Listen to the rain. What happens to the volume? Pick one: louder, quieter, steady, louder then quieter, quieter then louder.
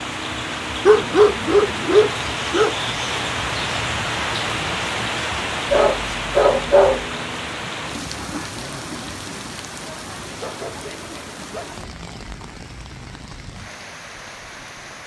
quieter.